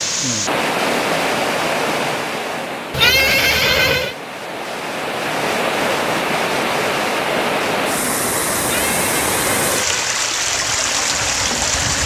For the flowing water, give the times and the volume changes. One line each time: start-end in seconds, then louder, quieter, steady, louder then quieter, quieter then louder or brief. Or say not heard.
0.0-12.0 quieter then louder.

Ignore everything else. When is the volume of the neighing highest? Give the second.
3 s.